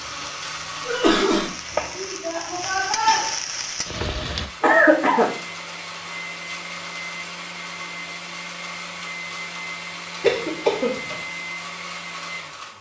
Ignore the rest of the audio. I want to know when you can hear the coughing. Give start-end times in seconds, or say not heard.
0.8-1.5, 4.6-5.3, 10.2-11.2.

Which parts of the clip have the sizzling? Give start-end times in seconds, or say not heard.
0.0-4.5.